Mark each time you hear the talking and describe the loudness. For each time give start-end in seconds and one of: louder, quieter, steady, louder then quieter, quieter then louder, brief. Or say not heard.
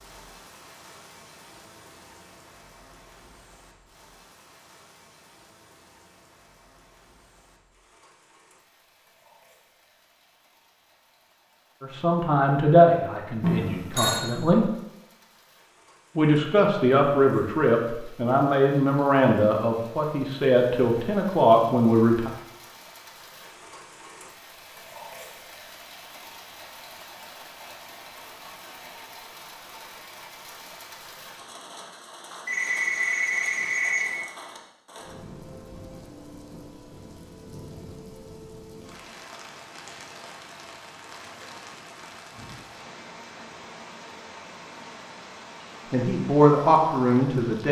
11.8-14.7 brief
16.1-22.3 steady
45.9-47.6 brief.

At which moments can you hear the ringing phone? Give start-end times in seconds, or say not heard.
13.4-14.2, 32.5-34.1.